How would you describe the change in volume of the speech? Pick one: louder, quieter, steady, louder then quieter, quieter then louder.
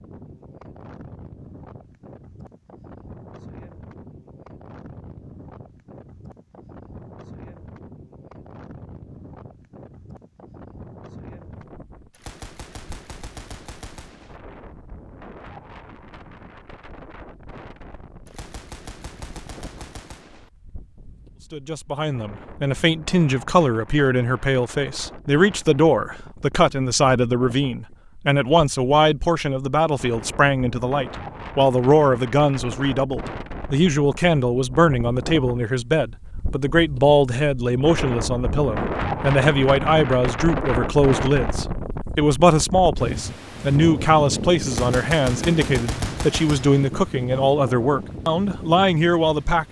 steady.